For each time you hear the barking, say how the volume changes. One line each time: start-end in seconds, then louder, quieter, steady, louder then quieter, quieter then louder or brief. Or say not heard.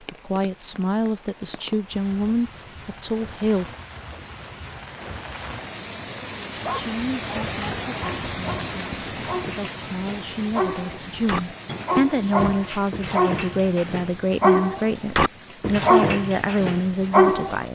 6.6-17.6 louder.